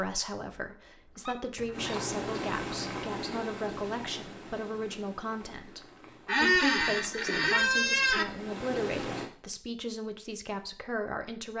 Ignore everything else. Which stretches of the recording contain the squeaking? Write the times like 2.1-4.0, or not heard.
0.5-1.9, 6.2-8.2.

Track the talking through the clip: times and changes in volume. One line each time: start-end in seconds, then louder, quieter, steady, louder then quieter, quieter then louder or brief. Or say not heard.
0.0-11.5 steady.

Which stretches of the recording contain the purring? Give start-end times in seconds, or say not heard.
1.7-9.3.